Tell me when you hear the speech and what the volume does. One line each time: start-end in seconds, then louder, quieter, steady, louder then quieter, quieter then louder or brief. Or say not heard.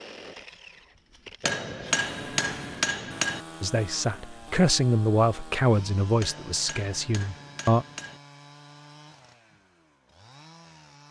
3.6-7.8 quieter.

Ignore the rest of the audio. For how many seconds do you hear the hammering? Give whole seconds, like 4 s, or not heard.
4 s.